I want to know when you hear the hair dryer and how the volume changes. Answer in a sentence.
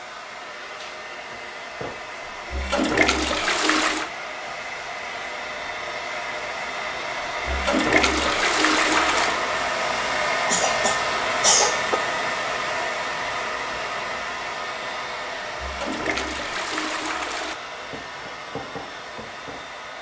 The hair dryer can be heard from 0.0 to 19.9 s, getting louder then quieter.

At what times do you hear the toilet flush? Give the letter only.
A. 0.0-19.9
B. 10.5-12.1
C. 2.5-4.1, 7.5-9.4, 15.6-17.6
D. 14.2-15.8
C.